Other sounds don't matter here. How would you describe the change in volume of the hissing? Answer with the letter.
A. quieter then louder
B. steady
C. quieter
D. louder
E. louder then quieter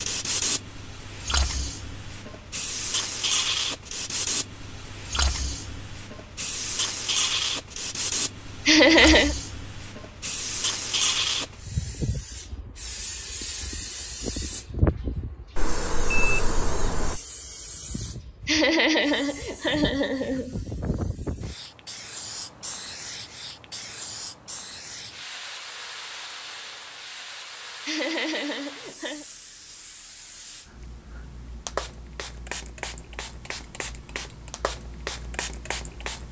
C.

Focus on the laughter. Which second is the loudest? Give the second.
9 s.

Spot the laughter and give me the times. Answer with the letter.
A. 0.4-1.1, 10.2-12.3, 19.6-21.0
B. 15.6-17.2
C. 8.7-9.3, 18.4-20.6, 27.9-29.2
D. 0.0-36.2
C.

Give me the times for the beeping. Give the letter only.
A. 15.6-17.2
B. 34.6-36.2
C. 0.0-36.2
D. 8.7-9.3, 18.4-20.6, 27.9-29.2
A.